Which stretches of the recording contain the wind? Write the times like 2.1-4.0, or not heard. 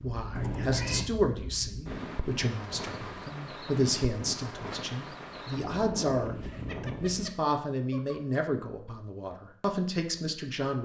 0.0-7.4.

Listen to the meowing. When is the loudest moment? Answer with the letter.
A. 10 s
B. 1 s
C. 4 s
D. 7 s
B.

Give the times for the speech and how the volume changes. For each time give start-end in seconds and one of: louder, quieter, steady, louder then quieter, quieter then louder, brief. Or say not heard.
0.0-10.8 steady.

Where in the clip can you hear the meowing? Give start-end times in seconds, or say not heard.
0.3-1.1, 6.5-8.2.